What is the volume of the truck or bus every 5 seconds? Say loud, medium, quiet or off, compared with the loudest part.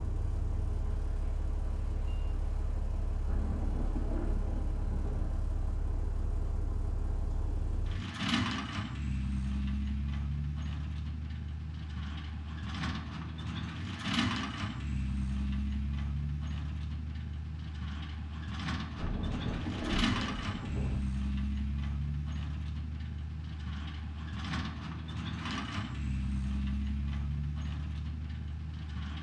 medium, loud, loud, loud, loud, loud.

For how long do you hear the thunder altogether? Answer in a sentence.
You can hear the thunder for 4 seconds altogether.